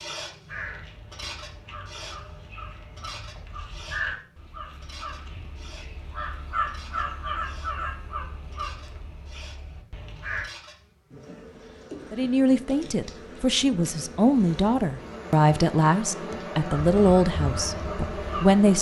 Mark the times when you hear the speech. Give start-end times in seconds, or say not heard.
12.1-18.7.